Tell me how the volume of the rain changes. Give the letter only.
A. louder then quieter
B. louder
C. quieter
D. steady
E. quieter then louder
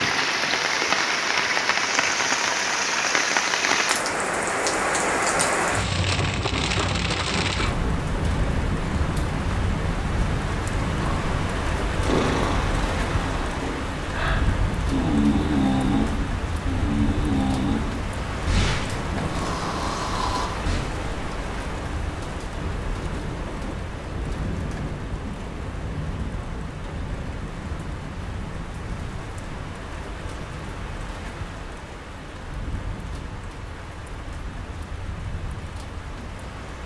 C.